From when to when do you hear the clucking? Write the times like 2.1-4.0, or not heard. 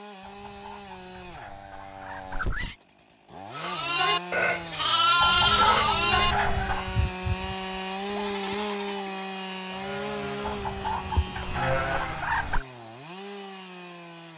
0.2-2.8, 5.2-6.9, 10.4-12.7.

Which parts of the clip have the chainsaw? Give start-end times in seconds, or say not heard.
0.0-14.3.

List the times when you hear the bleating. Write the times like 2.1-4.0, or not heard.
3.5-12.2.